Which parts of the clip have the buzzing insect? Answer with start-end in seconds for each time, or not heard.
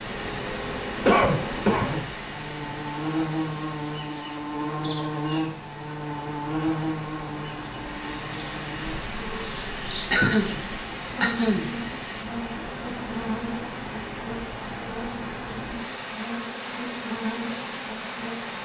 0.0-18.5.